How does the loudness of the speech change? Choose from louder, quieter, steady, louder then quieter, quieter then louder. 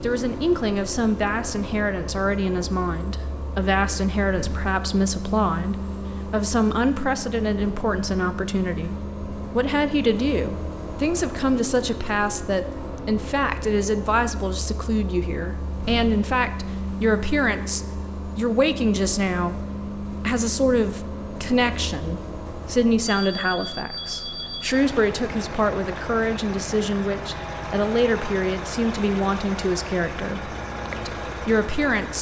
steady.